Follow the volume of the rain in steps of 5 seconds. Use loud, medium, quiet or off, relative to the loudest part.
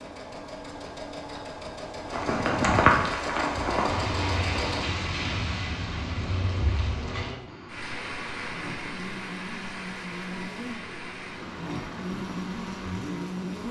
loud, medium, quiet.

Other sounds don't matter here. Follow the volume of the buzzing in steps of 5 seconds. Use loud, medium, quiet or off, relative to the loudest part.
off, medium, loud.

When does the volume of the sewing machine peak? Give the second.
4 s.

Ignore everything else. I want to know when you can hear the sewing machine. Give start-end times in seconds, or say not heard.
0.0-4.8.